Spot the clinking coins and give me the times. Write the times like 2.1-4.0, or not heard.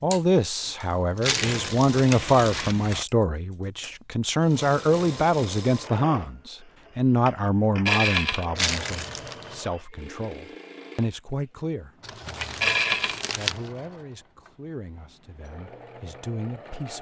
1.2-3.0, 7.8-8.4, 12.6-13.2.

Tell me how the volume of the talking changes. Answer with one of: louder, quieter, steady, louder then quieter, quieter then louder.
quieter.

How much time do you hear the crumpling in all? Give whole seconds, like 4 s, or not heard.
4 s.